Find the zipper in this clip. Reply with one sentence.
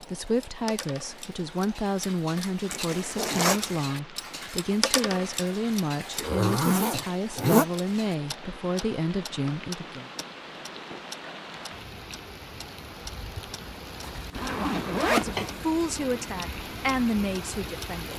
The zipper can be heard from 2.7 to 3.8 s, from 6.2 to 7.7 s and from 14.0 to 15.6 s.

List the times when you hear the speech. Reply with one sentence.
You can hear the speech from 0.0 to 10.1 s and from 15.1 to 18.1 s.